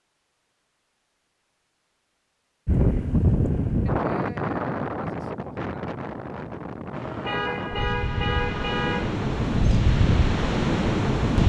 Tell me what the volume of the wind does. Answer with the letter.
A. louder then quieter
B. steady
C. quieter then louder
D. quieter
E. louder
C.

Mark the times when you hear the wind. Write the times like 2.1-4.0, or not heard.
2.6-11.4.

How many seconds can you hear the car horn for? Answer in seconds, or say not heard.
2 s.